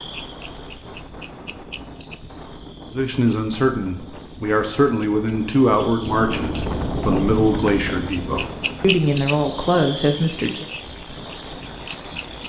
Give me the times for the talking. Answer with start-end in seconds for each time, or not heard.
2.9-10.7.